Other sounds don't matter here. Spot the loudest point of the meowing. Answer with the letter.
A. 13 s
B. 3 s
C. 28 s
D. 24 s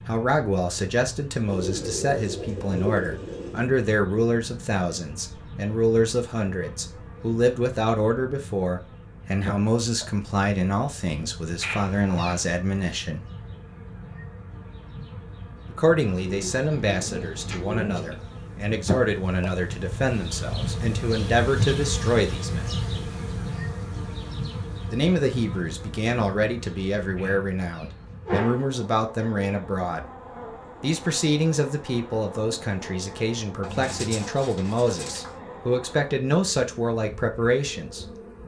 C.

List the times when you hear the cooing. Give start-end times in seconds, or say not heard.
1.4-3.7, 16.1-18.1, 33.6-35.4.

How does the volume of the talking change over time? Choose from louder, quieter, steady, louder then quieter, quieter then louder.
steady.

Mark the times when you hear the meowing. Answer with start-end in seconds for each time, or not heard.
11.6-12.4, 27.1-28.6.